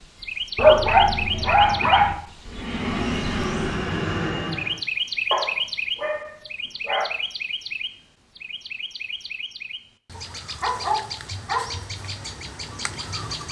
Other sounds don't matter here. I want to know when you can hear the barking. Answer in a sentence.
You can hear the barking from 0.6 to 2.1 s, from 5.3 to 7.1 s and from 10.2 to 11.8 s.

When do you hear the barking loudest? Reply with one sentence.
The volume of the barking peaks at 1 second.